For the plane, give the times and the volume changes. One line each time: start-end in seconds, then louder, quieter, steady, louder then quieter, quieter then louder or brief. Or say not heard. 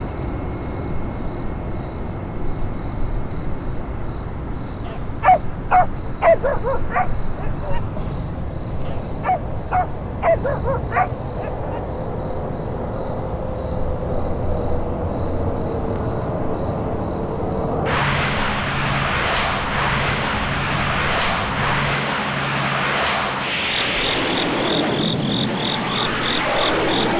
0.0-27.1 louder.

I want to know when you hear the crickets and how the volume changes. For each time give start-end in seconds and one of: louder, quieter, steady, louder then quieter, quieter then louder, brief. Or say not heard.
0.0-27.1 louder.